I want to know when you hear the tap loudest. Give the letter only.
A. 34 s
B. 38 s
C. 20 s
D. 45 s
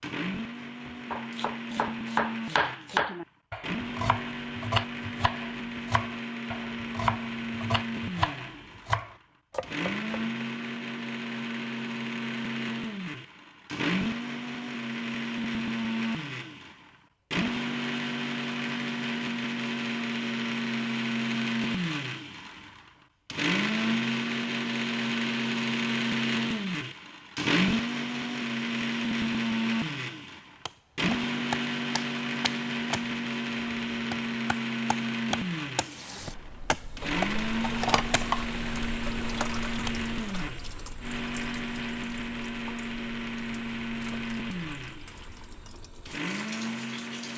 B.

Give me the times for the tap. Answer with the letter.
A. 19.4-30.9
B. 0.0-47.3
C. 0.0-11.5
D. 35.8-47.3
D.